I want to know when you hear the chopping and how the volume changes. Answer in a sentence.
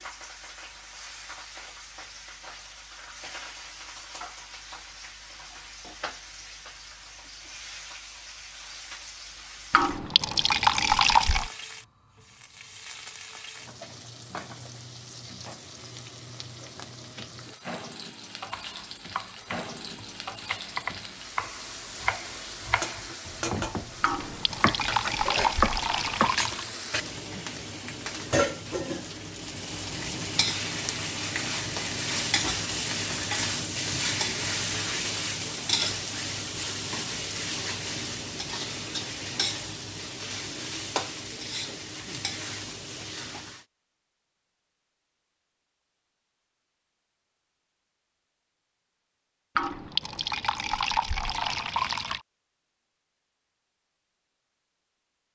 You can hear the chopping from 18.5 to 26.4 s, getting louder.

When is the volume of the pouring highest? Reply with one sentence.
The loudest moment of the pouring is at 11 seconds.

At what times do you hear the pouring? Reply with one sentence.
The pouring can be heard from 9.7 to 11.5 s, from 24.0 to 26.7 s and from 49.5 to 52.2 s.